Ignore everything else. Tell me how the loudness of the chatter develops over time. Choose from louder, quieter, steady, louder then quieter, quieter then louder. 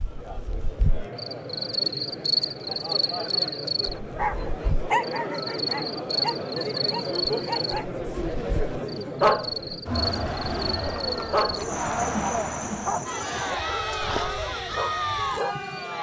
louder.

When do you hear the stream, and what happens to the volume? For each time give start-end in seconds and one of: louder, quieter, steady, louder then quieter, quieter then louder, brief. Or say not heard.
not heard.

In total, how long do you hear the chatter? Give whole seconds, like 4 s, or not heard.
16 s.